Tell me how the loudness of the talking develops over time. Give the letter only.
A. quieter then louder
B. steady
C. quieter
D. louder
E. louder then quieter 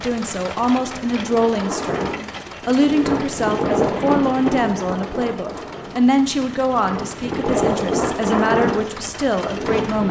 B.